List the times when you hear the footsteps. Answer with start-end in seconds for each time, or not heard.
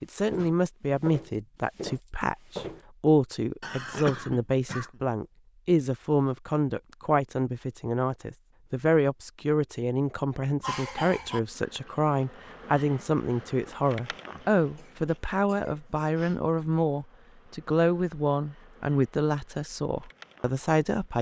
0.1-2.8.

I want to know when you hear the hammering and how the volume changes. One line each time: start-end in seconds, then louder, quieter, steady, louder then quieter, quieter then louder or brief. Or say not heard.
not heard.